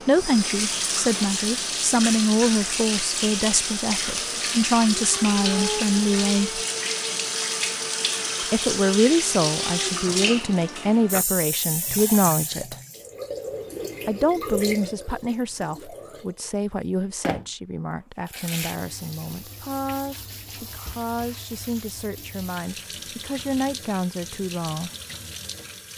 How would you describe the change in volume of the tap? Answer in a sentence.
The loudness of the tap goes down.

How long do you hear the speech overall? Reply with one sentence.
You can hear the speech for 22 seconds altogether.